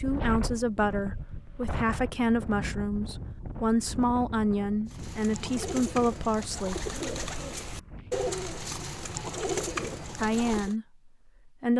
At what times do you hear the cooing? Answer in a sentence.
The cooing can be heard from 4.8 to 10.8 s.